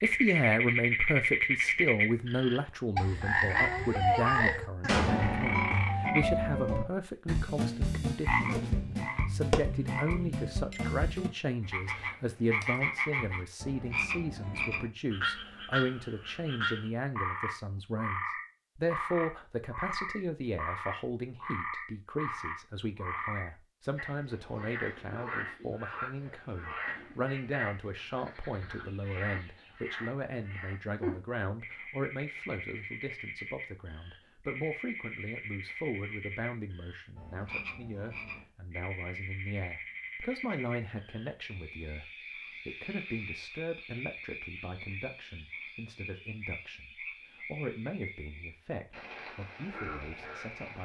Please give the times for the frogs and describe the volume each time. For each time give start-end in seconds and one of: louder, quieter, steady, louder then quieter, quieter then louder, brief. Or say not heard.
0.0-50.8 quieter.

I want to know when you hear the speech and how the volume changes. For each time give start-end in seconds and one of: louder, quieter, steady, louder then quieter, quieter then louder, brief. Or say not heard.
0.0-50.8 quieter.